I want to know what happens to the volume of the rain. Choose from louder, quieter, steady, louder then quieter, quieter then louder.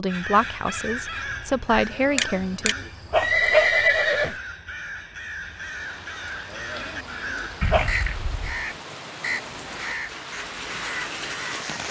louder.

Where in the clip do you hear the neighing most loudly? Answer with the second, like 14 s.
4 s.